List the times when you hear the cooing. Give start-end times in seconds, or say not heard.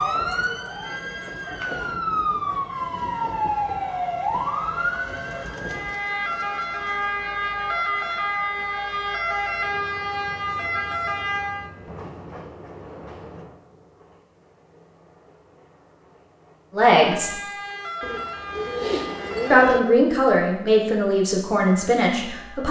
5.0-7.0, 18.0-19.8.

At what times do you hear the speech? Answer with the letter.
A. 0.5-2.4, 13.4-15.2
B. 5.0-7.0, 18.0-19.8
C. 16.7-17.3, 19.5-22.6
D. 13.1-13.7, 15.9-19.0
C.